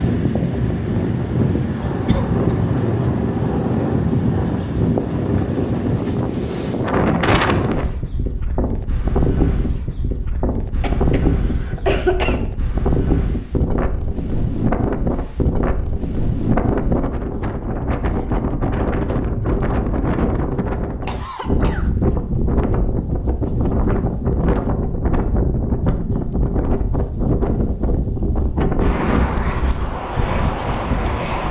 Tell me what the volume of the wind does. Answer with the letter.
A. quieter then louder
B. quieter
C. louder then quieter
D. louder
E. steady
E.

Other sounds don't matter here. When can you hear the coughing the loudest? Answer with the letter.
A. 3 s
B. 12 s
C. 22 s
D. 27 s
B.